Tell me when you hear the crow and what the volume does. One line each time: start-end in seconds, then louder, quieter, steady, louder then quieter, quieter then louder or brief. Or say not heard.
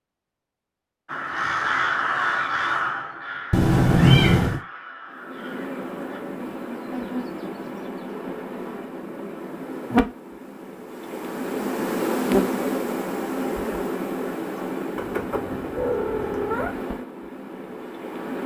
1.1-6.2 quieter.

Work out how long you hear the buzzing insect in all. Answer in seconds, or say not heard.
13 s.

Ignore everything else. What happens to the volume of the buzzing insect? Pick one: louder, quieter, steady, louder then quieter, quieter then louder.
louder then quieter.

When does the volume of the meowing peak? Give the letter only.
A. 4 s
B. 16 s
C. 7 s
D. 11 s
A.